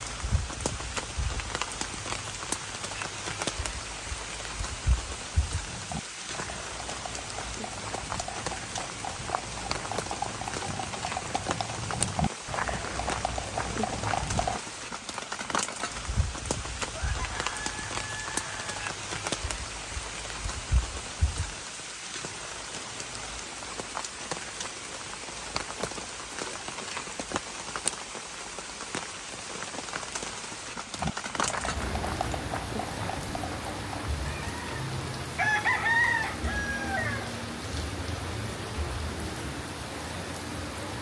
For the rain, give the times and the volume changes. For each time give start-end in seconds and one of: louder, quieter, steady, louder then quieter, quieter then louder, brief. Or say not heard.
0.0-40.9 steady.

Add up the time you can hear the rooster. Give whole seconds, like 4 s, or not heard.
5 s.